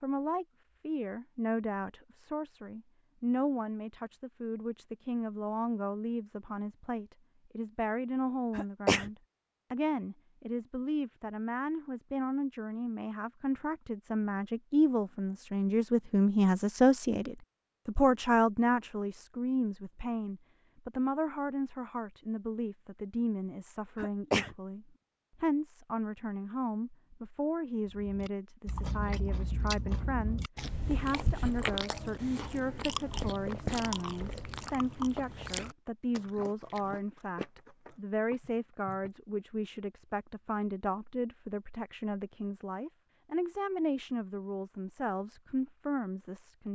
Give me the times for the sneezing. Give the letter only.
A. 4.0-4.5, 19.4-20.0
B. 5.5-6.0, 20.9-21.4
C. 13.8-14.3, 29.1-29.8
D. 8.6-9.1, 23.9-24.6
D.